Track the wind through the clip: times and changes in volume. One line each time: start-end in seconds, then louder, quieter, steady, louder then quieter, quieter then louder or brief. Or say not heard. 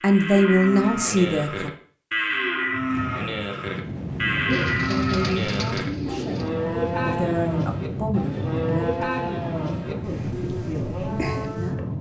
2.7-11.9 steady.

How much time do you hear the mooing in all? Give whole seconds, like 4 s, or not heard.
12 s.